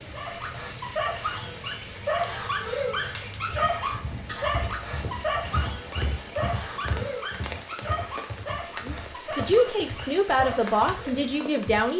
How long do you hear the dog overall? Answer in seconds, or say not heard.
11 s.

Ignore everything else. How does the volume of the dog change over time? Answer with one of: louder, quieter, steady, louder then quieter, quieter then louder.
quieter.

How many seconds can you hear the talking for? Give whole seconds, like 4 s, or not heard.
3 s.